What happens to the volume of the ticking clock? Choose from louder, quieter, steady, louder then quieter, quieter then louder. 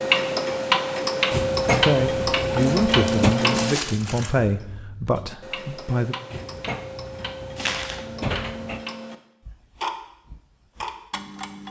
quieter then louder.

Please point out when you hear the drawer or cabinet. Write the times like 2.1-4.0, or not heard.
1.3-3.4, 6.3-8.8.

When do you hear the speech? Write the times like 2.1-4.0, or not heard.
1.7-6.2.